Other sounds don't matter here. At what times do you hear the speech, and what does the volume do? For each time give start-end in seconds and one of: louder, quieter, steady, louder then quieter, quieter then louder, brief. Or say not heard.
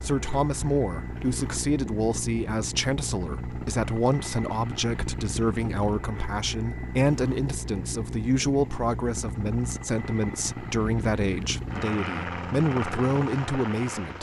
0.0-14.1 steady.